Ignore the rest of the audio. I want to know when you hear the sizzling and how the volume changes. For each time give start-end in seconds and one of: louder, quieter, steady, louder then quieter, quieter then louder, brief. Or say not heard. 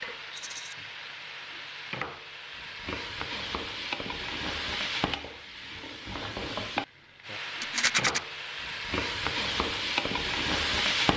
0.0-11.1 louder.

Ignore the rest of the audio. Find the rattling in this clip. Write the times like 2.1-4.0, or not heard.
0.3-0.8, 7.6-8.2.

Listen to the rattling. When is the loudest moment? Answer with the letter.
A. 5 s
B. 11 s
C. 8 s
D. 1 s
C.